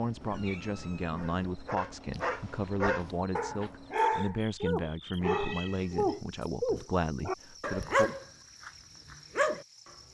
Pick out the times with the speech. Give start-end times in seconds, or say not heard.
0.0-8.1.